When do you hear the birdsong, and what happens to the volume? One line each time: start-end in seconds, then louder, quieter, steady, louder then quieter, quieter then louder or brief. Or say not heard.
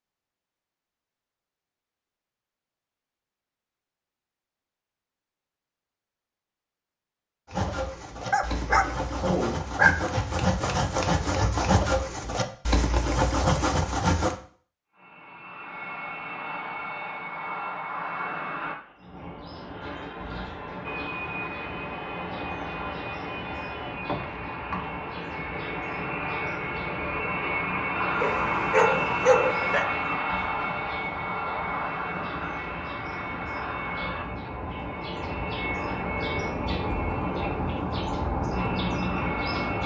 18.9-39.8 louder.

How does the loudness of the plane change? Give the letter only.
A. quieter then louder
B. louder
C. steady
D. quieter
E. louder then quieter
E.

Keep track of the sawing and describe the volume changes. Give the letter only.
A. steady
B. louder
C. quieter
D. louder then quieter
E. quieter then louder
B.